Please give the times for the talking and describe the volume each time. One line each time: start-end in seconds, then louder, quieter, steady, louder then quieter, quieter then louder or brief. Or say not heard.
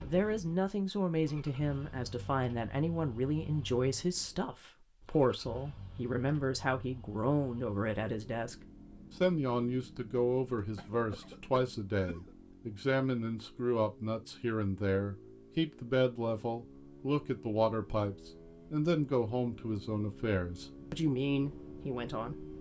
0.0-22.5 steady.